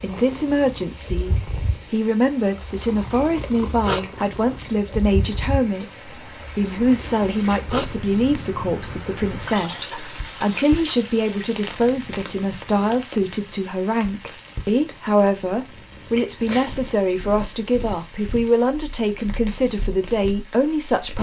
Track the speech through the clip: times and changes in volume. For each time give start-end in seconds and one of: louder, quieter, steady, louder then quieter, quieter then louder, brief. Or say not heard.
0.0-21.1 steady.